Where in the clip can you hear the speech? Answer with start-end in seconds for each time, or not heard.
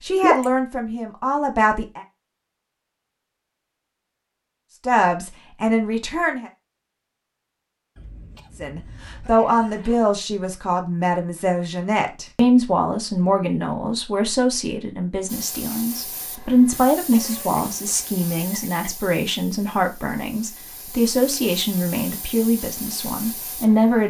0.0-2.0, 4.8-6.5, 8.6-24.0.